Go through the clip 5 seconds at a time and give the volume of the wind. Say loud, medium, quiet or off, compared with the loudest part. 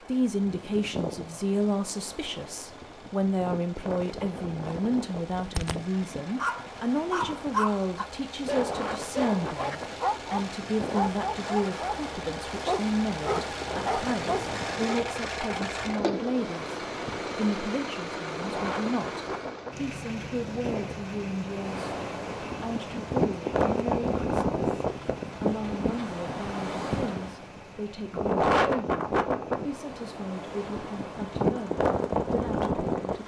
medium, medium, medium, medium, loud, loud, loud.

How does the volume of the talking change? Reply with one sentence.
The loudness of the talking goes down.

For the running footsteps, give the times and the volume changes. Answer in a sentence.
You can't hear the running footsteps here.